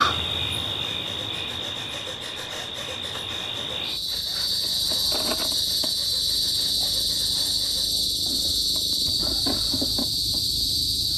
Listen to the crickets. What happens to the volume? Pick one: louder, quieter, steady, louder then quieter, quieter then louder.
louder.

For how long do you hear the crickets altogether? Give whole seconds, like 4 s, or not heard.
11 s.